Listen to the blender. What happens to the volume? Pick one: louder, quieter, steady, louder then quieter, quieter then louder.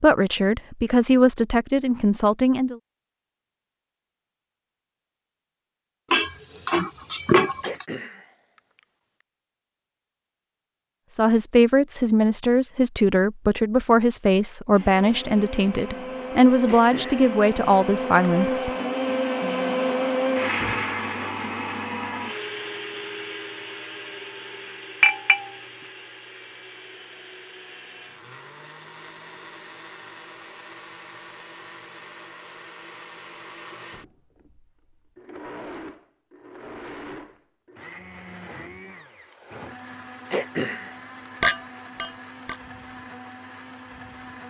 quieter.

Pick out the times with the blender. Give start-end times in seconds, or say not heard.
14.7-44.4.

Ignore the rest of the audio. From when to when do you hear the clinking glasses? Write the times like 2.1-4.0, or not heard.
6.1-7.8, 25.0-25.9, 41.4-42.5.